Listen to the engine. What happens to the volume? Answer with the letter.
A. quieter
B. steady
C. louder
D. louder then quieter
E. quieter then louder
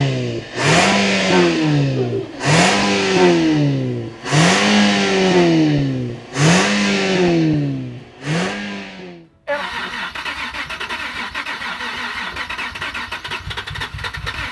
A.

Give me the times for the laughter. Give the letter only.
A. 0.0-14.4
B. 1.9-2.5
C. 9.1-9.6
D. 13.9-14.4
B.